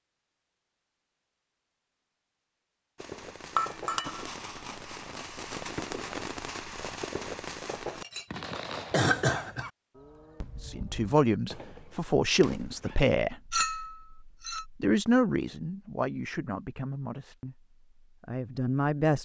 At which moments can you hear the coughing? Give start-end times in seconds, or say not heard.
8.9-9.7.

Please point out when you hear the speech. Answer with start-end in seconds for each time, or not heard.
10.6-19.1.